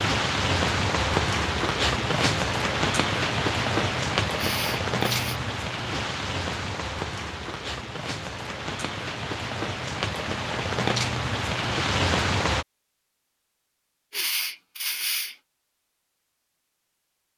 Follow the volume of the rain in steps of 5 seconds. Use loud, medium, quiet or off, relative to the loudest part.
loud, medium, loud, off.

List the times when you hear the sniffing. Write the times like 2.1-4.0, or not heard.
4.3-5.4, 14.1-15.3.